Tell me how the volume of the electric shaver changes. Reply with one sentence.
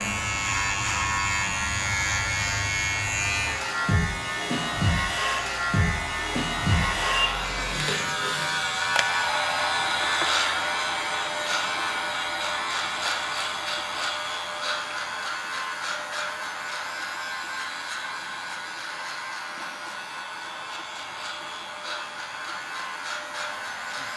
The volume of the electric shaver goes down.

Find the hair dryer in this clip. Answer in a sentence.
You can hear the hair dryer from 0.2 to 24.1 s.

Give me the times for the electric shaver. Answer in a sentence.
The electric shaver can be heard from 0.0 to 24.1 s.